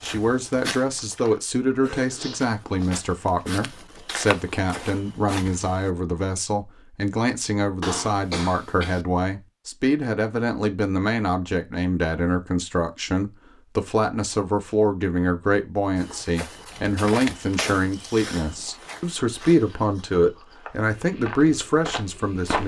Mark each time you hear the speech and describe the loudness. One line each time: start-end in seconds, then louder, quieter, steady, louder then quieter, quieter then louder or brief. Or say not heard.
0.0-22.6 steady.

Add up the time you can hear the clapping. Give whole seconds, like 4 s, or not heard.
not heard.